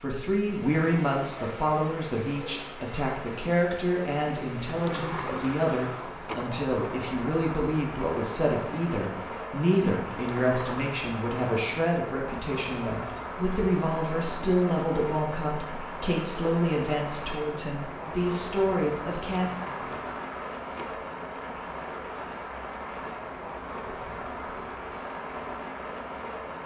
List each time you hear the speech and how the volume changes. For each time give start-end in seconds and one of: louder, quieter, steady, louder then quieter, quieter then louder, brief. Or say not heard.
0.0-19.5 steady.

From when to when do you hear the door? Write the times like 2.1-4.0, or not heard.
4.7-6.7, 10.1-10.8, 19.2-21.1.